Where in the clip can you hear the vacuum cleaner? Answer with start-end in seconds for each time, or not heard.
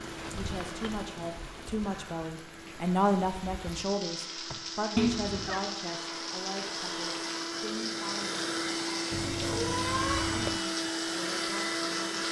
0.0-12.2.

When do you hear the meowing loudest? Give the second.
5 s.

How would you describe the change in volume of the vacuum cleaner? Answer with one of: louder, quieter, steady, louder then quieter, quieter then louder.
louder.